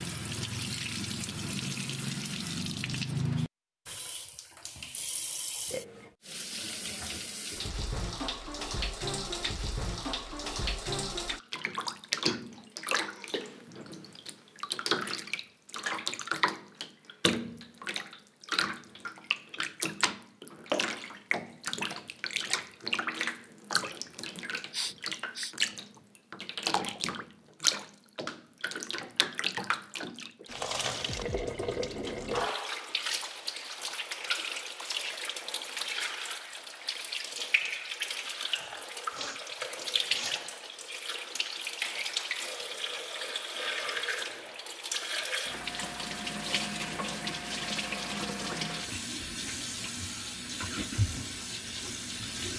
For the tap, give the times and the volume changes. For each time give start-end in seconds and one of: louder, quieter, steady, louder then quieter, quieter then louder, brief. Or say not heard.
0.0-52.5 steady.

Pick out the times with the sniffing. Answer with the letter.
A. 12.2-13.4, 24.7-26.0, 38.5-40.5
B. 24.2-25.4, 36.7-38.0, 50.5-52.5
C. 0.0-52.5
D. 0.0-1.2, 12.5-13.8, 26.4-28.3
A.